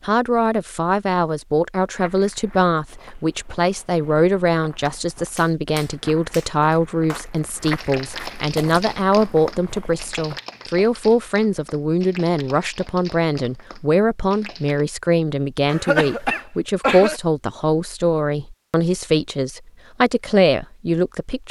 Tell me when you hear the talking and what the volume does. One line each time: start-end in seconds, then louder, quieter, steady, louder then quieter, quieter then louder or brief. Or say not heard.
0.1-21.4 steady.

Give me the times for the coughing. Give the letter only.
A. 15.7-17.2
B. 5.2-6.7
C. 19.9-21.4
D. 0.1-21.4
A.